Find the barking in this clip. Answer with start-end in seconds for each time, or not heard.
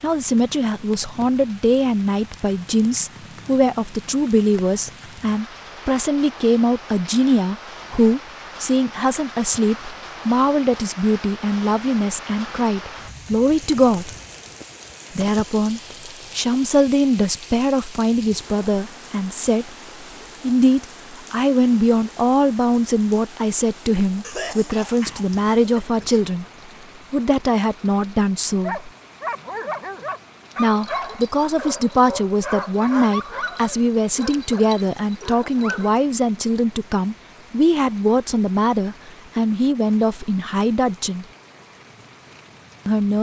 28.6-35.9.